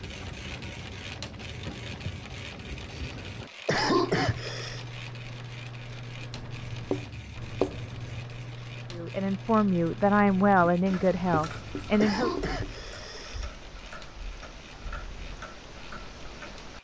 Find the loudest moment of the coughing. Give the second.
4 s.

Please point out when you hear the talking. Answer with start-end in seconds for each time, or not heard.
8.9-12.3.